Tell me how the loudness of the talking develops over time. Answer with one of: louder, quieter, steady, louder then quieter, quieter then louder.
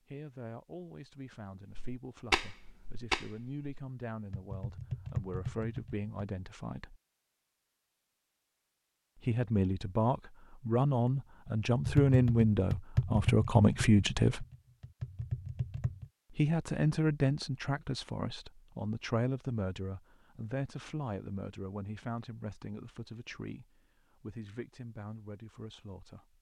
louder then quieter.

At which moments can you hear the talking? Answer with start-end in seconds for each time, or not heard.
0.1-7.0, 9.2-14.4, 16.3-26.3.